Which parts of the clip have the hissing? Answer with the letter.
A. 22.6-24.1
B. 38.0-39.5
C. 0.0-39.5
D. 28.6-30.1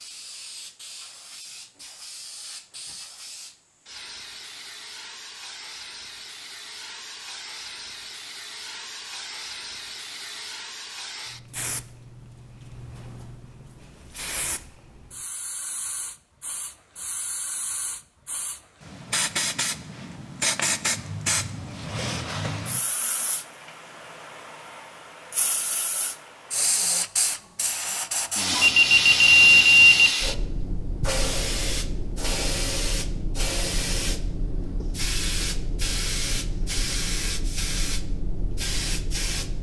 C.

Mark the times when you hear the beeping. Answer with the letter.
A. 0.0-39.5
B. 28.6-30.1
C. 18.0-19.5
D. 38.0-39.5
B.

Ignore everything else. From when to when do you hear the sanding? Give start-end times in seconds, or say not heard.
not heard.